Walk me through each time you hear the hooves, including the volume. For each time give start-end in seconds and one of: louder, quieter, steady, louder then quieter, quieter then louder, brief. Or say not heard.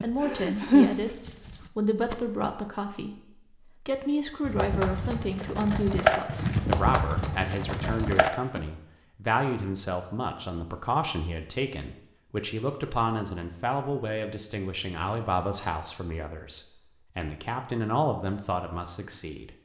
0.0-2.1 brief
4.4-8.6 louder then quieter.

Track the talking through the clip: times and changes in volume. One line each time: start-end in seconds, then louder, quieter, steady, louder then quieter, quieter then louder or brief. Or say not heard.
0.0-19.6 steady.